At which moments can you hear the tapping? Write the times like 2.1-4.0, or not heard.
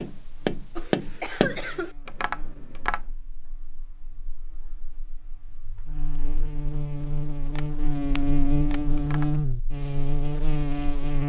0.0-3.0, 7.5-9.3.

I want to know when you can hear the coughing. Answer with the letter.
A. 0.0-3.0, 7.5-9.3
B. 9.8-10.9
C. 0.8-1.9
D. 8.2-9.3
C.